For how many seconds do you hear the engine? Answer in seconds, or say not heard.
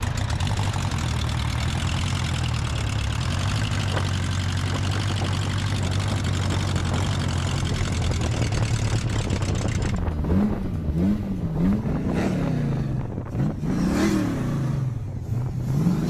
16 s.